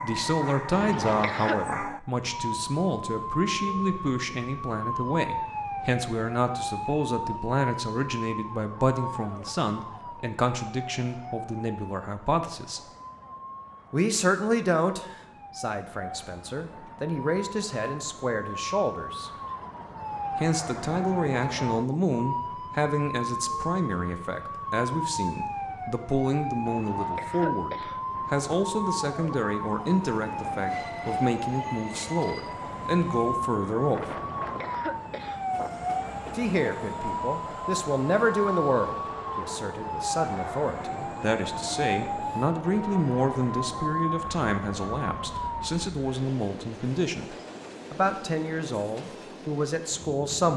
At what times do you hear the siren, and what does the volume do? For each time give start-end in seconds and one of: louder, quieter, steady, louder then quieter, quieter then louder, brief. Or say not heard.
0.0-45.9 quieter then louder.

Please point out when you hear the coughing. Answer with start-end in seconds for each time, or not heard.
0.7-1.6, 26.6-28.6, 34.0-35.5.